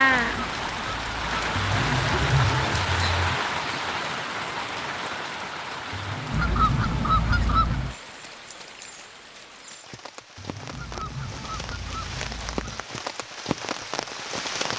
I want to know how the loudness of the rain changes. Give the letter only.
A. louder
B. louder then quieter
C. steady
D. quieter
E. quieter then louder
E.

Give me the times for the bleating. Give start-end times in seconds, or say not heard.
1.6-3.4, 5.9-8.0, 10.3-12.4.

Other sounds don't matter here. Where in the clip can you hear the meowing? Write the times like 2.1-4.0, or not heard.
not heard.